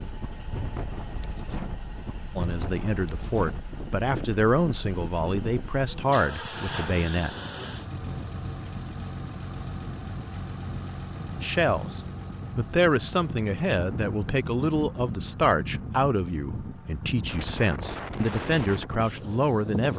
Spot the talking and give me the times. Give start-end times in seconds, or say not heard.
2.4-7.3, 11.4-19.9.